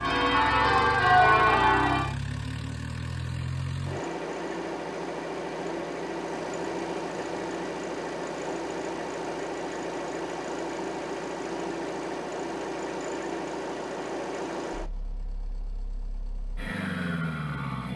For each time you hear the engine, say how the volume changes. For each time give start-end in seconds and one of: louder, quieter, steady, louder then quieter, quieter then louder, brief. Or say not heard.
0.0-17.9 steady.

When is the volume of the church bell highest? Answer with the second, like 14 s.
1 s.